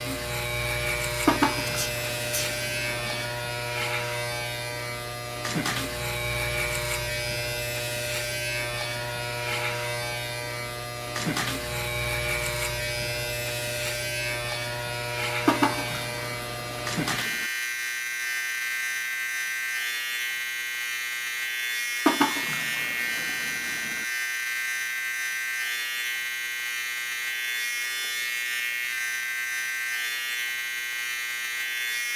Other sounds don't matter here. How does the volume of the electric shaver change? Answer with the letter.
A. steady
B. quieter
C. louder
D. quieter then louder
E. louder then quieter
A.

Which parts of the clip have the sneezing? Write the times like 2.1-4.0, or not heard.
1.6-2.5.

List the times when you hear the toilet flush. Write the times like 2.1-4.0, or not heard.
1.2-3.2, 15.4-17.4, 22.1-24.1.